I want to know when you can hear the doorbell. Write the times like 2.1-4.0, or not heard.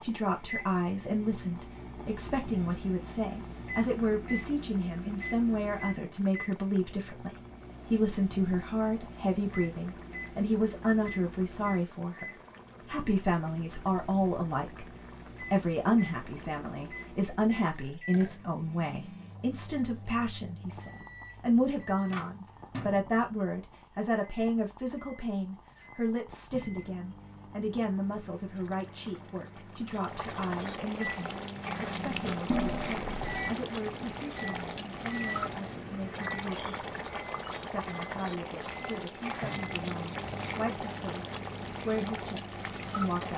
32.5-33.5.